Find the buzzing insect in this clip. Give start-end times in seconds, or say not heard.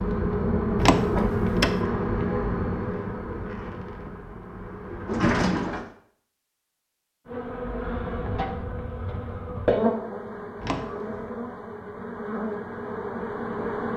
0.0-5.3, 7.2-13.9.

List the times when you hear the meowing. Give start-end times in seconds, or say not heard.
not heard.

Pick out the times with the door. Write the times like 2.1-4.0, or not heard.
0.8-1.8, 5.0-5.9, 10.6-11.3.